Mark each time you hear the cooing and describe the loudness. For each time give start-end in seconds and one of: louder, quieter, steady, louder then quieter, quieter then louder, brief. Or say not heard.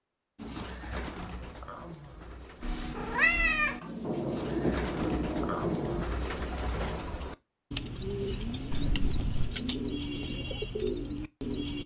0.3-11.8 louder.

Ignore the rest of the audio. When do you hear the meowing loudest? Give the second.
3 s.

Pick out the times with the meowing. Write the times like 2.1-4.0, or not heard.
2.6-3.8, 8.7-9.6.